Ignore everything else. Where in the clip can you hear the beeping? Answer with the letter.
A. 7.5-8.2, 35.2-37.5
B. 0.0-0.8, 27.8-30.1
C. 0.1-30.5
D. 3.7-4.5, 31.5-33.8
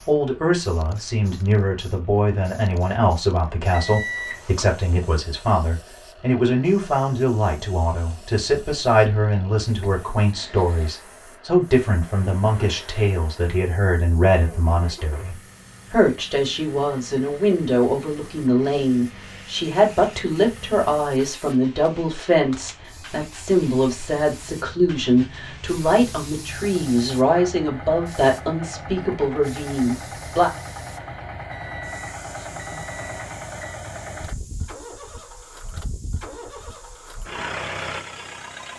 D.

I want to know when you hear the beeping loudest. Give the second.
4 s.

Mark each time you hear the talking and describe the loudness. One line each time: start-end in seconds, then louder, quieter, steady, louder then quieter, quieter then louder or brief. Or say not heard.
0.1-30.5 steady.